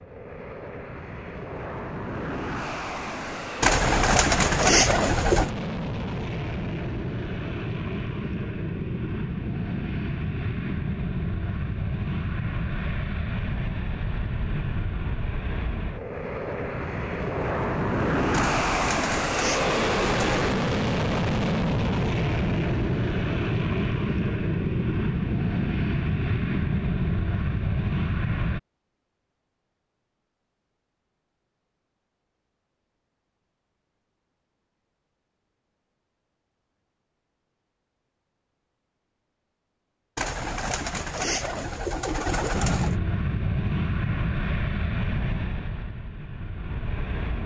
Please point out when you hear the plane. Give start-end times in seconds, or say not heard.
0.0-28.6, 42.5-47.4.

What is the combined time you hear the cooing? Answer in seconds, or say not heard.
7 s.